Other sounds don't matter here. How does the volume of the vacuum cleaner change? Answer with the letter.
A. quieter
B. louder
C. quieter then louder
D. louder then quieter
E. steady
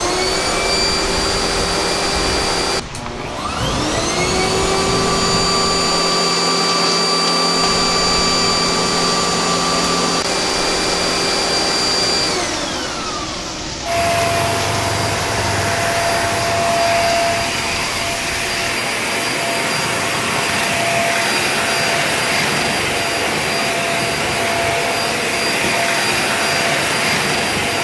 E.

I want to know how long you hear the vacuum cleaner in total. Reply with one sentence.
You can hear the vacuum cleaner for 28 seconds altogether.